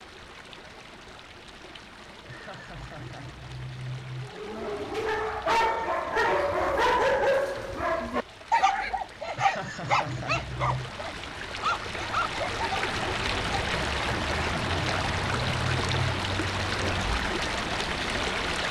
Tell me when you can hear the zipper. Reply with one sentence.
You can't hear the zipper here.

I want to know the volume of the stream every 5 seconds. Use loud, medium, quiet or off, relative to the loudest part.
quiet, quiet, loud, loud.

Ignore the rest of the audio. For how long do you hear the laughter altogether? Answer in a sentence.
You can hear the laughter for 6 seconds altogether.